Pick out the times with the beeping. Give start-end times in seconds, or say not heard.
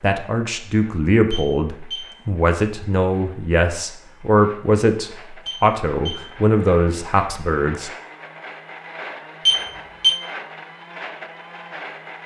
1.3-2.1, 5.5-6.2, 9.4-10.2.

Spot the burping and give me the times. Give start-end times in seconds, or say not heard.
not heard.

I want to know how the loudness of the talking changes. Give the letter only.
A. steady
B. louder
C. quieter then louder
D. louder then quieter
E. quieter
A.